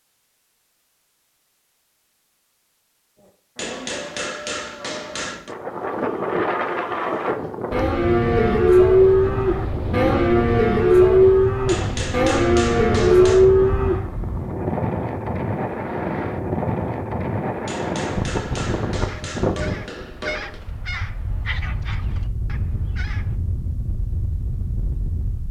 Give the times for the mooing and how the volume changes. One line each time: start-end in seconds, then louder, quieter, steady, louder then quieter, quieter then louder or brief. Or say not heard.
3.1-14.1 louder.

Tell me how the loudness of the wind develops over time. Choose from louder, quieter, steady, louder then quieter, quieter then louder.
quieter.